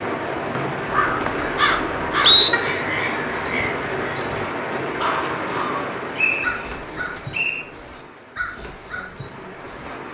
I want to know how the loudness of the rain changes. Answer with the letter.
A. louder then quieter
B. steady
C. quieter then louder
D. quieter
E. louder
D.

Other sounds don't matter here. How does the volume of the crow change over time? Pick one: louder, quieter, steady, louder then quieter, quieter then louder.
quieter.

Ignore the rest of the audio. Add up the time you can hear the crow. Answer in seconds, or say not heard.
9 s.